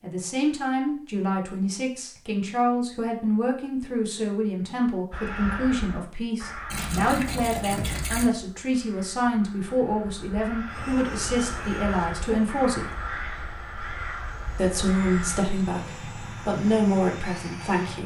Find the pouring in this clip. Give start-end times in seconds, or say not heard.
6.7-8.3.